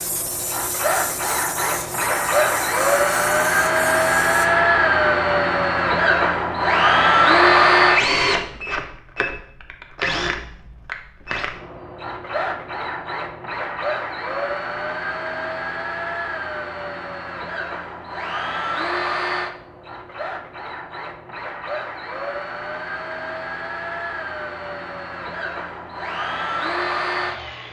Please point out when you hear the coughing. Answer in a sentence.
You can't hear the coughing here.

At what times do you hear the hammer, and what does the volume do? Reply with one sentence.
The hammer can't be heard in this clip.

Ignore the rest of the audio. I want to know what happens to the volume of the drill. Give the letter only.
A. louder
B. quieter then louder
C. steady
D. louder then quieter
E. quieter
E.